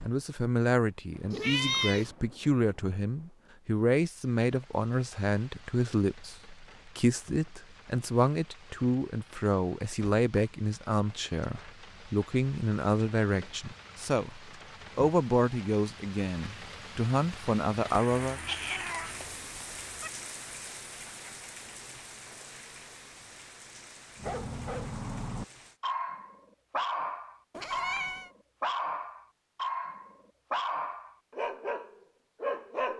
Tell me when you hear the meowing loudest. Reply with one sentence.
The volume of the meowing peaks at 2 seconds.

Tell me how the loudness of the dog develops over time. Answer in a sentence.
The volume of the dog stays about the same.